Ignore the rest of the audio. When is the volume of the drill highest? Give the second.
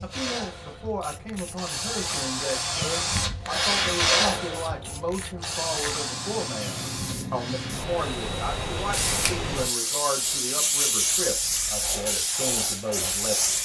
4 s.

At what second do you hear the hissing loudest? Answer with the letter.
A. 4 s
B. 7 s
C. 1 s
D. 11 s
D.